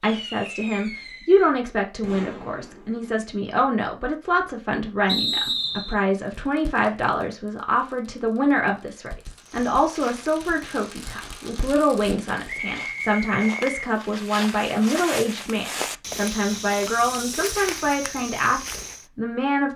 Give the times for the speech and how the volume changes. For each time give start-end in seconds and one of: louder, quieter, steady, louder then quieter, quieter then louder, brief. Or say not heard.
0.0-19.7 steady.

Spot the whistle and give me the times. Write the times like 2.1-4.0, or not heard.
5.0-6.0, 12.4-13.8.